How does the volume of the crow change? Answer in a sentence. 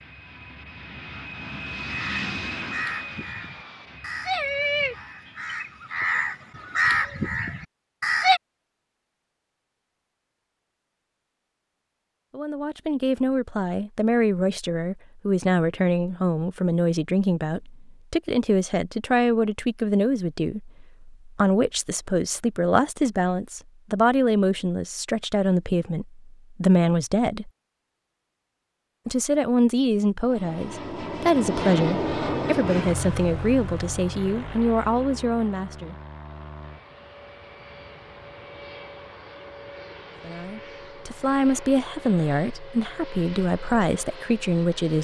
The volume of the crow goes up.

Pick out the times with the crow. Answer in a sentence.
You can hear the crow from 1.9 to 8.4 s.